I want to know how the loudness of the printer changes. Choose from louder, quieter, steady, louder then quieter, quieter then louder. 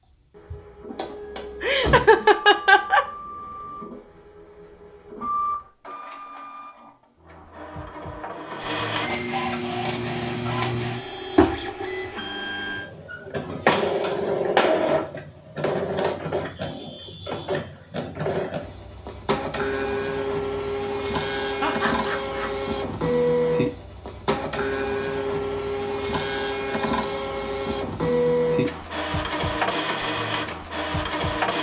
louder.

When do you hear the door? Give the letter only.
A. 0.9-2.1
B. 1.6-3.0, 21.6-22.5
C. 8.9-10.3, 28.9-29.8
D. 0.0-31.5
A.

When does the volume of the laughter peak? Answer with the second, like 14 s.
3 s.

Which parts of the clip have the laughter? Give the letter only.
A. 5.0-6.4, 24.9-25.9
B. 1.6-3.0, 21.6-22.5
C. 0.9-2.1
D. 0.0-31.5
B.